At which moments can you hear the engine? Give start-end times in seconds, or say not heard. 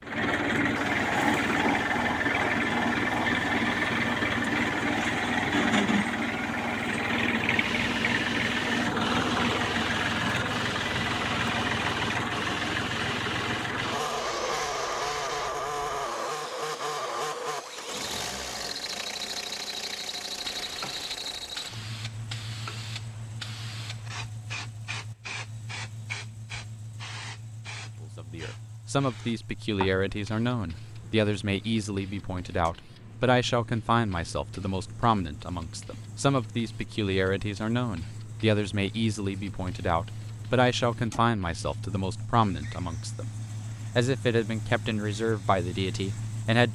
0.0-46.7.